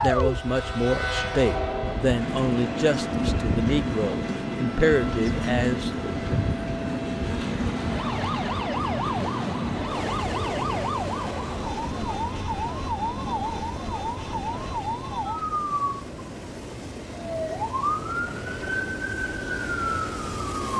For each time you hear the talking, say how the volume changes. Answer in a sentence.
The talking can be heard from 0.0 to 6.3 s, at a steady volume.